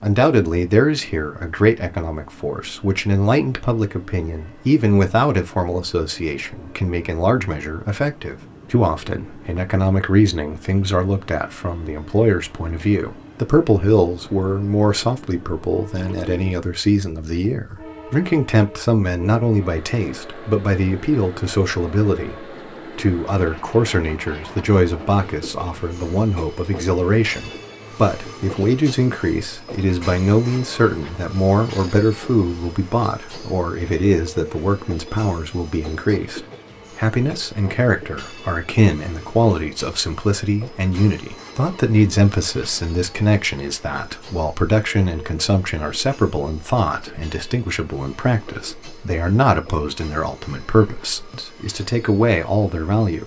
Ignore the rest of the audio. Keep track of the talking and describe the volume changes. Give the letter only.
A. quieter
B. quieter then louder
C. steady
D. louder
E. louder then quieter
C.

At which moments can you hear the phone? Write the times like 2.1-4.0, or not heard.
not heard.